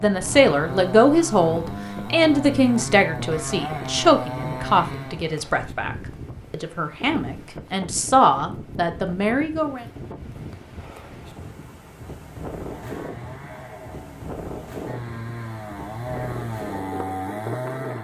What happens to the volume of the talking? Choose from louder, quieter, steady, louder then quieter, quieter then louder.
quieter then louder.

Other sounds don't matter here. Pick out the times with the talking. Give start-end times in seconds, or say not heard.
0.0-9.8.